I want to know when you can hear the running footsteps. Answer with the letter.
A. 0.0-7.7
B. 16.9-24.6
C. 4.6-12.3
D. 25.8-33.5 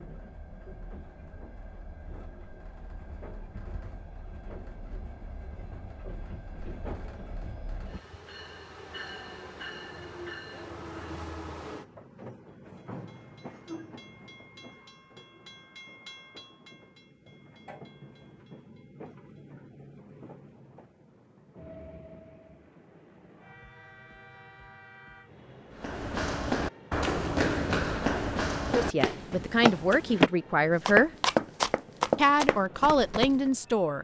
D.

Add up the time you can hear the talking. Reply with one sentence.
The talking can be heard for 4 seconds in total.